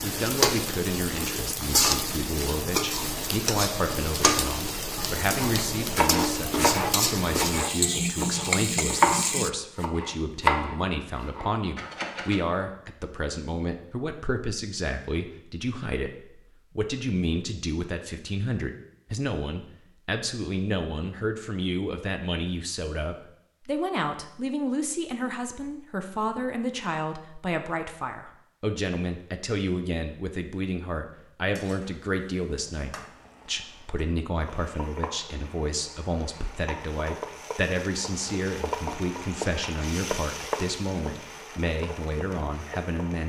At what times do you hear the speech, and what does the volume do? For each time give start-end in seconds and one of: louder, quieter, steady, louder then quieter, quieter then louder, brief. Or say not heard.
0.0-43.2 steady.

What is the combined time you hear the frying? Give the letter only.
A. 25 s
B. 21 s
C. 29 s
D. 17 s
B.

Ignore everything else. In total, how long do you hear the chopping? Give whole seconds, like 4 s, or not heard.
7 s.